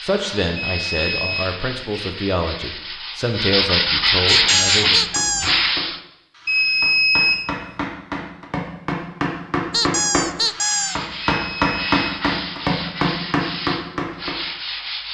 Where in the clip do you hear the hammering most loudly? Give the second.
12 s.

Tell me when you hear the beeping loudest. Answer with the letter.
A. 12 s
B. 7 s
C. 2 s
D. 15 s
B.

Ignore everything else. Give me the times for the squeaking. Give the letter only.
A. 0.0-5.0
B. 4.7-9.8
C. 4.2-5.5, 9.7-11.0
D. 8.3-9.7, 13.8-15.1
C.